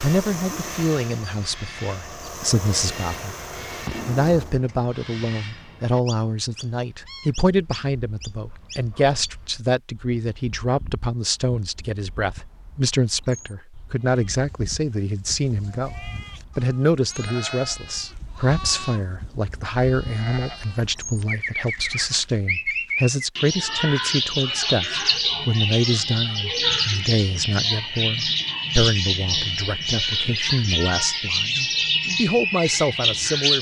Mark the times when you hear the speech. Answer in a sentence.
The speech can be heard from 0.0 to 3.4 s and from 4.0 to 33.5 s.